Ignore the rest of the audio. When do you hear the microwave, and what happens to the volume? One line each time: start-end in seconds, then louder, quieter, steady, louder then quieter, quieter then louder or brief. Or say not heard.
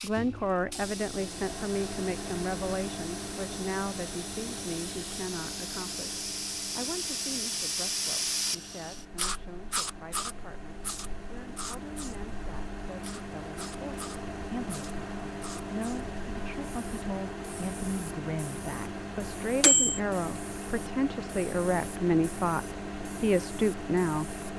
0.0-24.5 quieter then louder.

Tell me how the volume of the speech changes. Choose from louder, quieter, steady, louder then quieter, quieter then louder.
quieter then louder.